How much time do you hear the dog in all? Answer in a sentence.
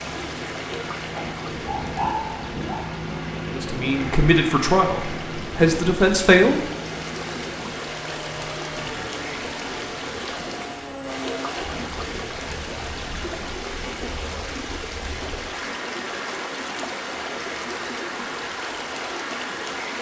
You can hear the dog for 2 seconds altogether.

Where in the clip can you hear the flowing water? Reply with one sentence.
You can hear the flowing water from 0.0 to 19.9 s.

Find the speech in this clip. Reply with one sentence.
The speech can be heard from 3.5 to 6.6 s.